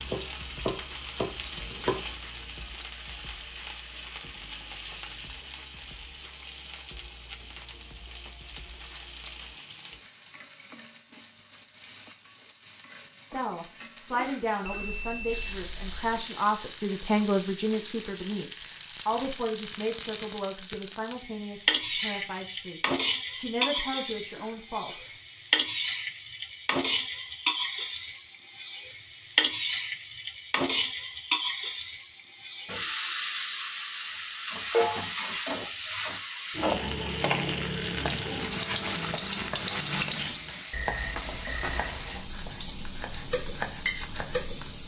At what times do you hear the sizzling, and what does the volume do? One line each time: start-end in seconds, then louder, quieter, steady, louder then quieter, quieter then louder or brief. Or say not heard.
0.0-44.8 louder.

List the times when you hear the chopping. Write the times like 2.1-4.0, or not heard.
0.0-2.1, 37.9-44.7.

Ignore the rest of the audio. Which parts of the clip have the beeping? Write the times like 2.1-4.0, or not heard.
14.7-16.1, 40.7-42.2.